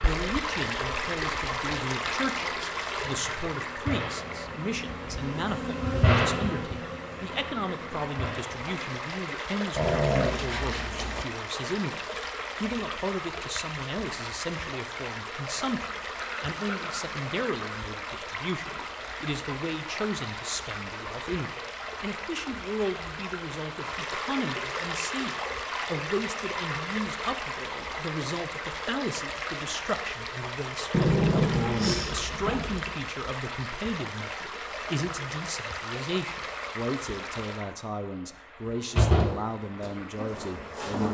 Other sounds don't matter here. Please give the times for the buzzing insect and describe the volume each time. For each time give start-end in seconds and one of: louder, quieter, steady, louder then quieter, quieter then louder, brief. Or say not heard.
0.0-9.0 louder then quieter
39.0-41.0 brief.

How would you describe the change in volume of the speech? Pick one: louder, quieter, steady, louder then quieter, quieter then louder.
steady.